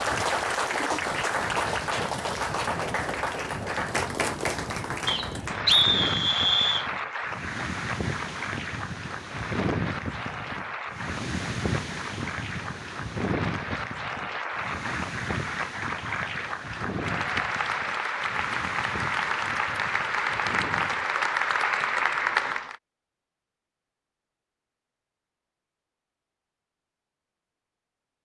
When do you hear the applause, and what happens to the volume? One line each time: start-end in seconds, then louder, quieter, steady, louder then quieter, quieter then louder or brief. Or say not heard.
0.0-22.8 quieter then louder.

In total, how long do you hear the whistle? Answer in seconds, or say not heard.
2 s.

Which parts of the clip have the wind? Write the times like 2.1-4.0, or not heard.
0.0-21.1.